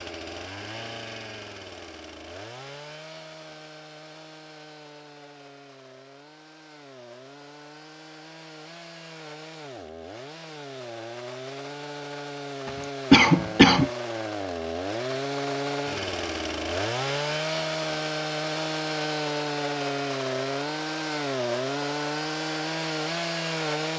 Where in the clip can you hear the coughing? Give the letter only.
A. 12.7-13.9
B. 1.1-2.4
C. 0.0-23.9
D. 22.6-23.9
A.